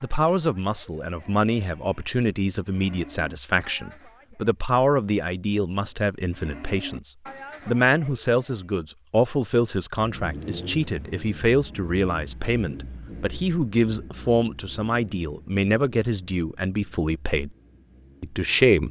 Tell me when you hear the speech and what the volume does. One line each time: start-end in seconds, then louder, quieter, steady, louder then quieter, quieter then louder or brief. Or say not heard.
0.0-17.5 steady
18.2-18.8 brief.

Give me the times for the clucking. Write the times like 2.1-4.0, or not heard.
not heard.